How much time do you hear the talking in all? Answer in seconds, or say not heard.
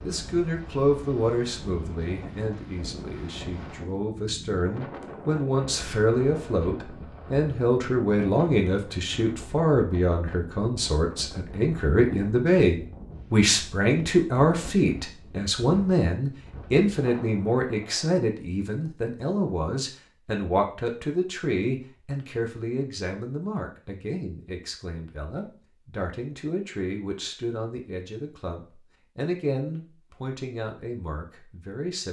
32 s.